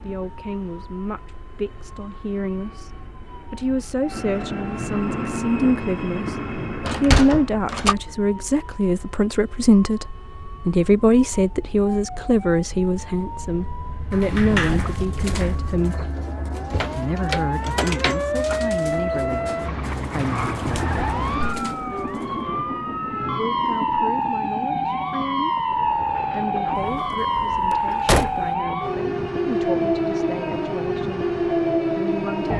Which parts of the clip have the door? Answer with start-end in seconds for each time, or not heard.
6.8-8.0, 14.1-15.6, 26.8-28.6.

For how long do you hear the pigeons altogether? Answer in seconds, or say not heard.
8 s.